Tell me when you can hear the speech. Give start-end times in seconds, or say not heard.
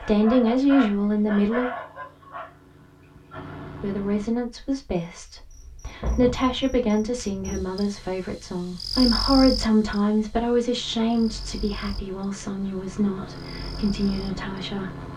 0.0-1.7, 3.8-14.9.